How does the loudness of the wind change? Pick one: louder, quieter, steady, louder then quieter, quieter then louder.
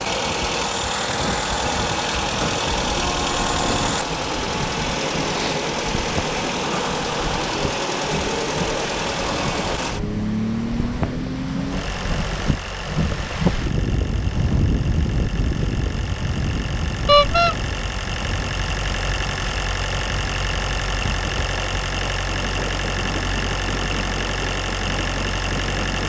louder then quieter.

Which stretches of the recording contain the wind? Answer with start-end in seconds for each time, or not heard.
0.1-26.0.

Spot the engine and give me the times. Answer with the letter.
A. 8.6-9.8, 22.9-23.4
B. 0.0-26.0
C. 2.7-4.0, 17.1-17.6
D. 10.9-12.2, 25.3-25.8
B.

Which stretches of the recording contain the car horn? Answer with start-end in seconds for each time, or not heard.
2.7-4.0, 17.1-17.6.